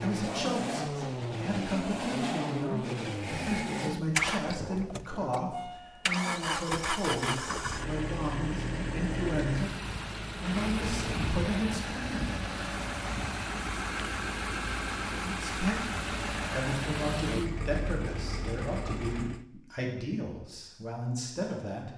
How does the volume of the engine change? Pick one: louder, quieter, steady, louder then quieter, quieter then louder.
steady.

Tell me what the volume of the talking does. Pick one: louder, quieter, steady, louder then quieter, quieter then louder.
steady.